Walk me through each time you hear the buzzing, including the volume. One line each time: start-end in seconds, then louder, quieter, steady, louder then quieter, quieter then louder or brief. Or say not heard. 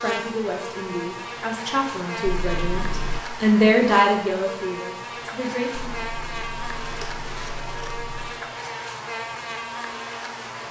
0.0-10.6 steady.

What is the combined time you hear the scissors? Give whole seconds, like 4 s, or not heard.
4 s.